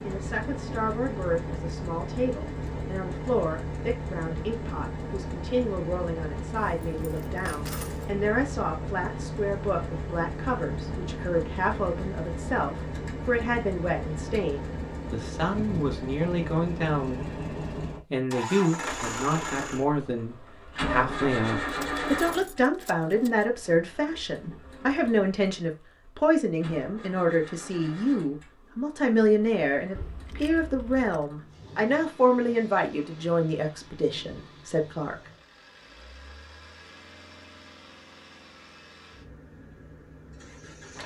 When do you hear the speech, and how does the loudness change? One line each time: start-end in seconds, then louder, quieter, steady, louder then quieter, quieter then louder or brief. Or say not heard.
0.0-17.4 steady
18.1-35.1 steady.